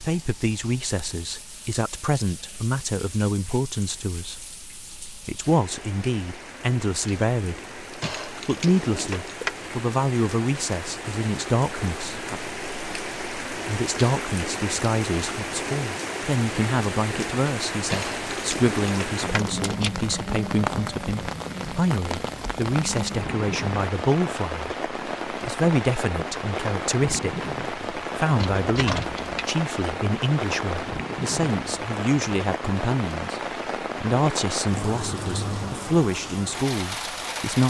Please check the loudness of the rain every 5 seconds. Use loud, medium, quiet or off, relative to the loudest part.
quiet, medium, loud, loud, loud, loud, loud, loud.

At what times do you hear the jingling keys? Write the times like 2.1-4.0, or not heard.
8.0-9.5, 17.9-19.9, 28.4-29.5.